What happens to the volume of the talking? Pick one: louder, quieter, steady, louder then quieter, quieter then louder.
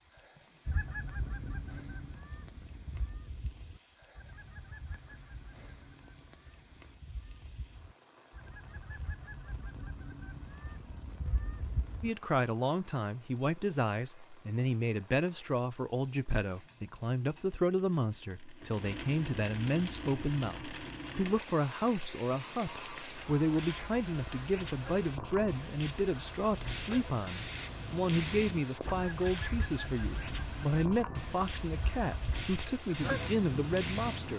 steady.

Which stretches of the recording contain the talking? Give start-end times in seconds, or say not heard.
12.0-34.3.